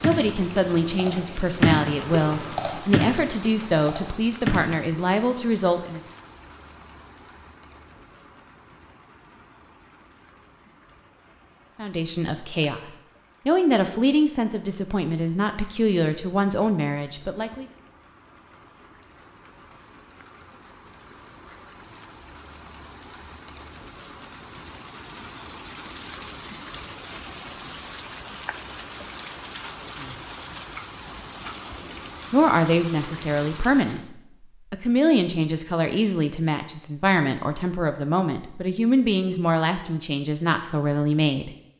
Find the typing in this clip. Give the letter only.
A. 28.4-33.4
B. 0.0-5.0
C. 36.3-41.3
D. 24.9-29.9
B.